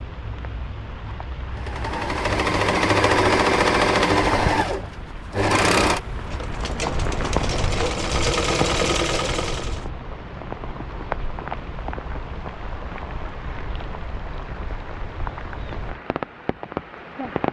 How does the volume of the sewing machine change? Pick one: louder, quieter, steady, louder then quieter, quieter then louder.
quieter then louder.